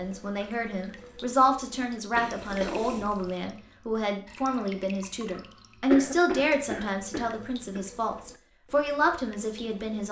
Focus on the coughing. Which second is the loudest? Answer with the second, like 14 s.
6 s.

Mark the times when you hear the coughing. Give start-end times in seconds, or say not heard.
2.1-2.8, 5.9-7.8.